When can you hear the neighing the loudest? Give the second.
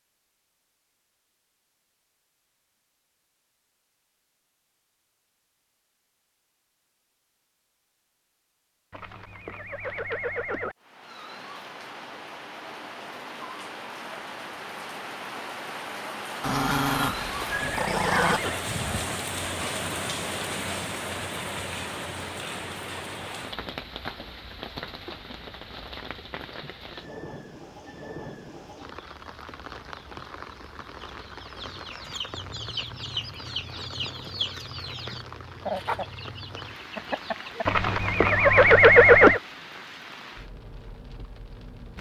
39 s.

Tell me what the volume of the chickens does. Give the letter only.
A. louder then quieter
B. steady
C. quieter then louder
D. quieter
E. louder
A.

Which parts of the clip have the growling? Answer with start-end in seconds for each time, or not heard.
16.4-18.4.